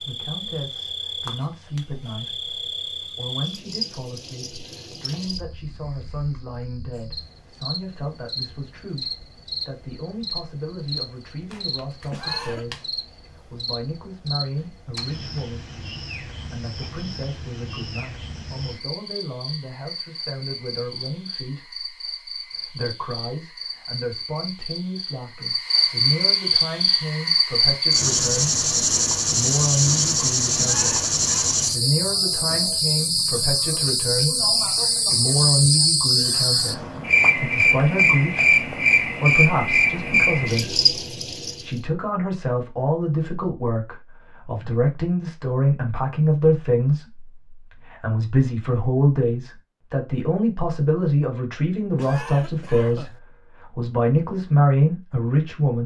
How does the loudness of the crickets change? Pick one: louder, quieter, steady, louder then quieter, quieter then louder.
louder.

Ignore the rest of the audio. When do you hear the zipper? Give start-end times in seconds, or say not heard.
not heard.